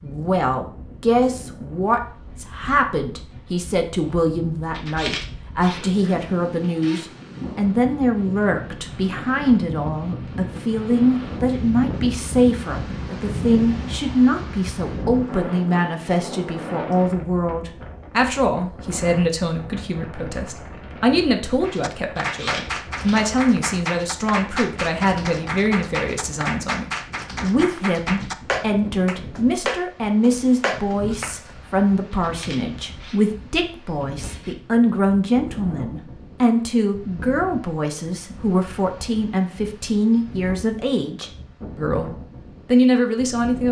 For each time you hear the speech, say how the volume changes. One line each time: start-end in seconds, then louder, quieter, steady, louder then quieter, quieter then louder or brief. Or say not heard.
0.0-43.6 steady.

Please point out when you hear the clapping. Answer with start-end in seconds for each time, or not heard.
21.6-31.6.